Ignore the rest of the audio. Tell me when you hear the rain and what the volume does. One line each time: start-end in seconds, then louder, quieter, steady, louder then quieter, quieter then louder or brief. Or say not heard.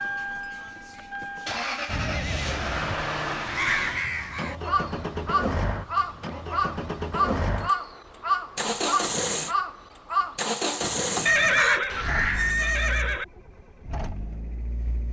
not heard.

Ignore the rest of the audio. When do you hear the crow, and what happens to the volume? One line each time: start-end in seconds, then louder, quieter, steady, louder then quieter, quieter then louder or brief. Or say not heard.
3.5-12.6 steady.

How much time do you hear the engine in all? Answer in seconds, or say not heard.
15 s.